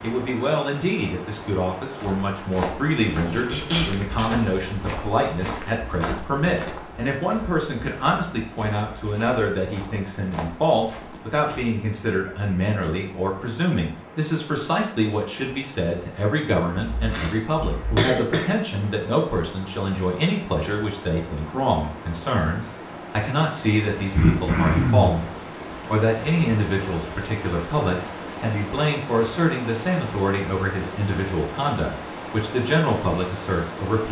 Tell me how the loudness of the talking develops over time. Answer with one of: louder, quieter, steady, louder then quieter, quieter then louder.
steady.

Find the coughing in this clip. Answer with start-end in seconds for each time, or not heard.
2.5-4.2, 16.8-18.6, 24.1-25.2.